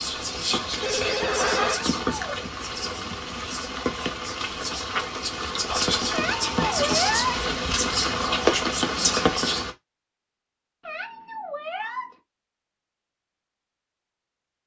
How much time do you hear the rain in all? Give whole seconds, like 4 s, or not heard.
10 s.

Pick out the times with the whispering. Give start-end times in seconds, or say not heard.
0.0-9.7.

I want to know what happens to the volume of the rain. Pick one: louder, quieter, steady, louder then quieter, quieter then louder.
louder.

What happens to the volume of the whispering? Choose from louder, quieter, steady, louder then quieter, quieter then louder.
quieter then louder.